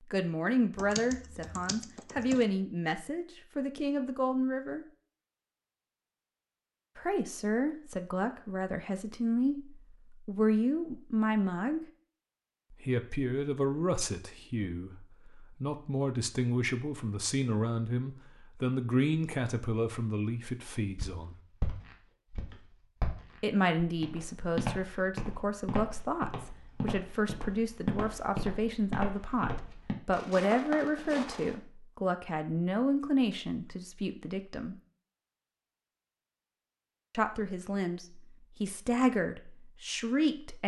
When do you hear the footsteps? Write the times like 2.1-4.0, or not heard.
20.9-31.6.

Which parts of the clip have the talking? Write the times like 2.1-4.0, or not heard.
0.1-4.8, 7.0-11.8, 12.7-21.4, 23.4-34.8, 37.1-40.6.